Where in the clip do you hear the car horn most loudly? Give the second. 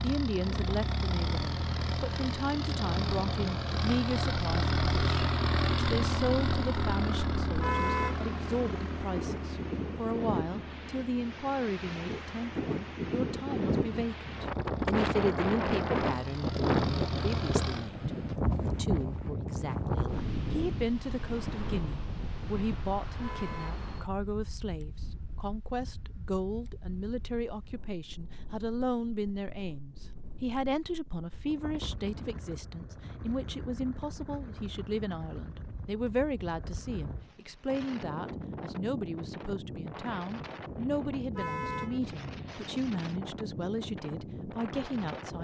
8 s.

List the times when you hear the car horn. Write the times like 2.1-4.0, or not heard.
7.5-8.2, 23.1-23.9, 41.3-42.0.